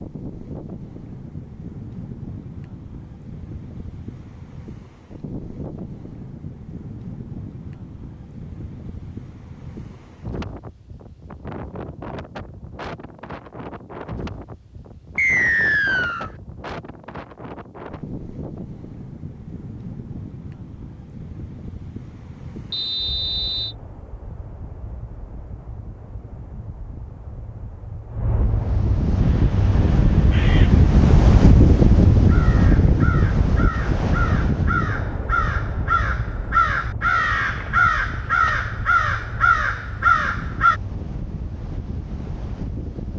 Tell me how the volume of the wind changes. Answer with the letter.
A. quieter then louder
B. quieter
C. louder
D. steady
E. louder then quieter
E.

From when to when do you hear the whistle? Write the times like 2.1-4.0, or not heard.
15.2-16.3, 22.7-23.8.